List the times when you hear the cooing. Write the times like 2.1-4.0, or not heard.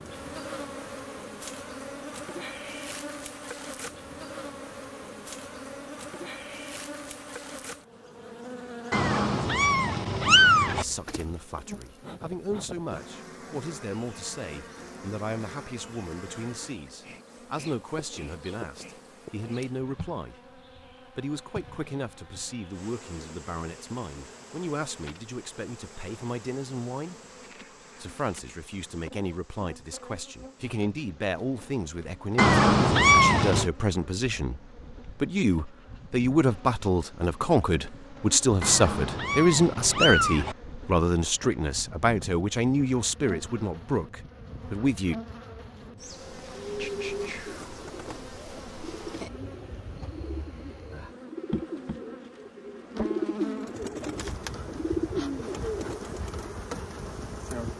46.2-56.5.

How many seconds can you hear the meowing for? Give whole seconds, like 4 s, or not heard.
5 s.